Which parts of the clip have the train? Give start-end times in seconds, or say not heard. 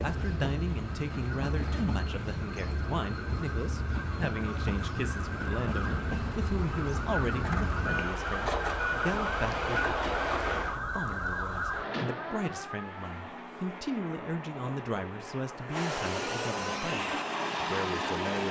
0.0-10.8, 12.8-18.4.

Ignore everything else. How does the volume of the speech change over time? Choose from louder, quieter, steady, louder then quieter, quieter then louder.
steady.